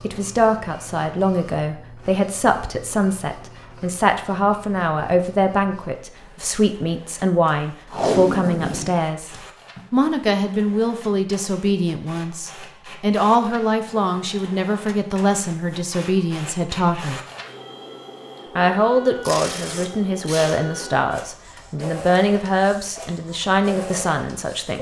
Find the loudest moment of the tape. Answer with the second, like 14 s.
8 s.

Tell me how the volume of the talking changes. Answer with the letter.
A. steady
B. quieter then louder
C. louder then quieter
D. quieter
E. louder
A.